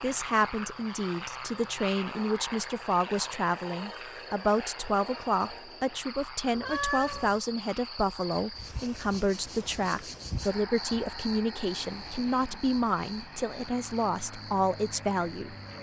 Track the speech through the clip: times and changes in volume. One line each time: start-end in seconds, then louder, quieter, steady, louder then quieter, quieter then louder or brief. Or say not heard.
0.0-15.6 steady.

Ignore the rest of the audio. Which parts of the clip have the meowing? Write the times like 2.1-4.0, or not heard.
6.5-7.4.